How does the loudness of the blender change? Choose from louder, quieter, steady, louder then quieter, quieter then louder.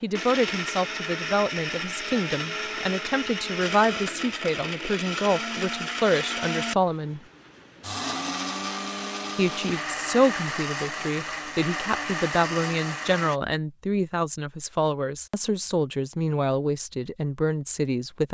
steady.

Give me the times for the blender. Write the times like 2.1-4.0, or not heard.
0.0-13.4.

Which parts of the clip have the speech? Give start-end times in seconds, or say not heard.
0.0-7.2, 9.3-18.2.